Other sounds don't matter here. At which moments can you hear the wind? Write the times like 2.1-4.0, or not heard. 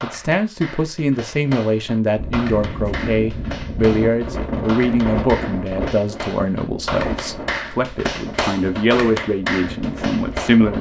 2.1-10.7.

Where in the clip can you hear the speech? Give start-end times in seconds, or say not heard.
0.0-10.7.